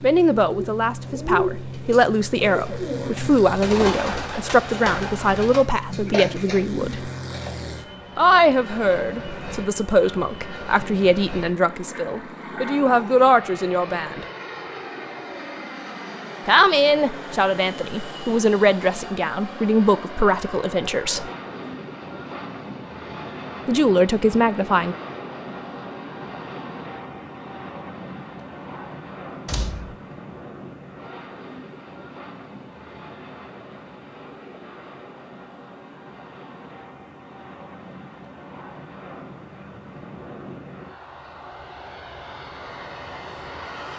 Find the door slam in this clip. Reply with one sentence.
The door slam can be heard from 29.4 to 29.9 s.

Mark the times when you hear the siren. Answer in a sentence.
The siren can't be heard in this clip.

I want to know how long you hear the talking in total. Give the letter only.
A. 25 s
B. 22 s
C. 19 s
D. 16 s
C.